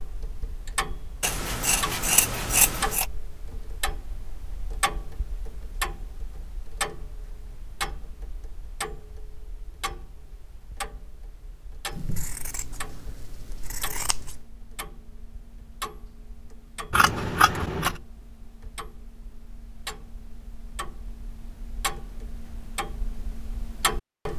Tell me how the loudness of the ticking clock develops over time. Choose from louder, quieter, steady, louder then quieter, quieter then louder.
quieter then louder.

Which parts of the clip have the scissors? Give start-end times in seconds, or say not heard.
1.2-3.0, 11.9-14.4, 16.9-17.9.